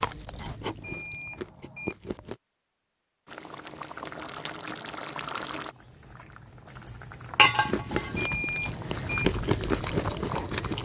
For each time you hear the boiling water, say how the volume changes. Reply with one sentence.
You can hear the boiling water from 3.2 to 10.8 s, getting louder then quieter.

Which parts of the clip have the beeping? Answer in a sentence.
You can hear the beeping from 0.8 to 1.9 s and from 8.2 to 9.2 s.